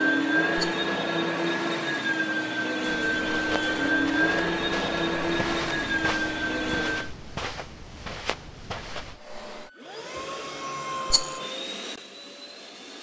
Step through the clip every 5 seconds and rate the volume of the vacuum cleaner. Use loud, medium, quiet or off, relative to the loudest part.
loud, loud, medium.